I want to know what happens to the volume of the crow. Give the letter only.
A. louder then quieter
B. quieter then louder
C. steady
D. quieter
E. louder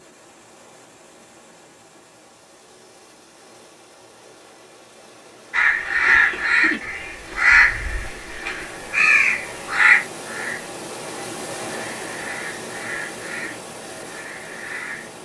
D.